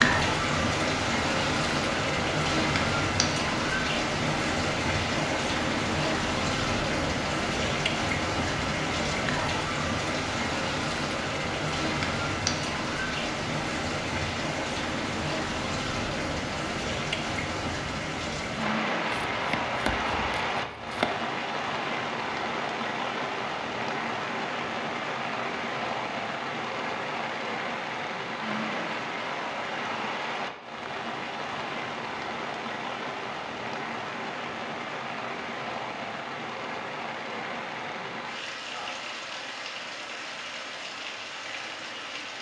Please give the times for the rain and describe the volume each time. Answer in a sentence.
You can hear the rain from 0.0 to 42.3 s, getting quieter.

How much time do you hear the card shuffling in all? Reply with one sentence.
The card shuffling can be heard for 2 seconds in total.